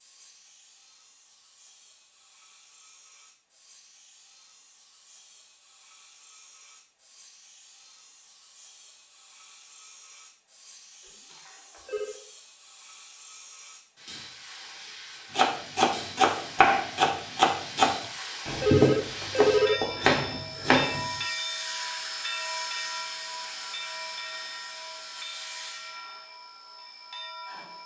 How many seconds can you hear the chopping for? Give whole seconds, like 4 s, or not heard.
6 s.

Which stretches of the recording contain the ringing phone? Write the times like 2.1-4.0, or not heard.
11.1-12.2, 18.0-19.8.